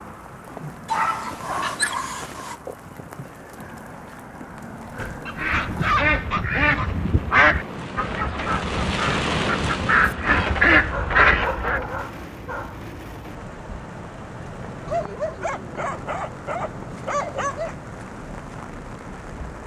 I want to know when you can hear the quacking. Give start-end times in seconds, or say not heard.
5.3-11.9.